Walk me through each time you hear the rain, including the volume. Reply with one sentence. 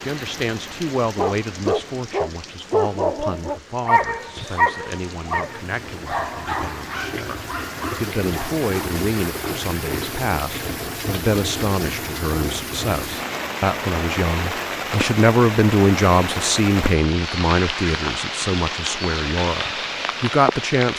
The rain can be heard from 0.0 to 20.9 s, getting louder.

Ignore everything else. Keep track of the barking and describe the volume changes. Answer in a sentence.
The loudness of the barking goes down.